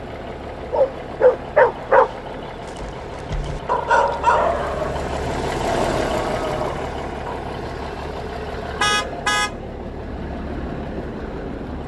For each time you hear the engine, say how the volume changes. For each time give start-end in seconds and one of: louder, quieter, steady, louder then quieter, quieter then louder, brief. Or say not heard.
0.0-11.8 louder then quieter.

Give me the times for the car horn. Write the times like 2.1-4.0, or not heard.
8.8-9.6.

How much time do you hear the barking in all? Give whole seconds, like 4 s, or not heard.
7 s.